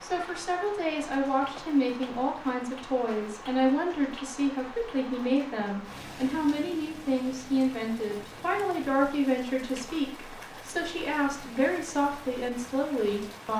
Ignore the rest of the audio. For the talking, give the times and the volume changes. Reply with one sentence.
The talking can be heard from 0.0 to 13.5 s, at a steady volume.